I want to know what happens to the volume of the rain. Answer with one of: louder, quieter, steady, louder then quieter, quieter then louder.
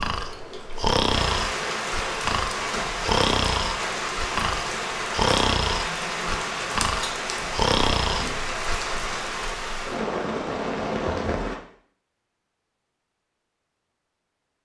steady.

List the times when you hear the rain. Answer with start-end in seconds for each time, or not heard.
0.0-11.6.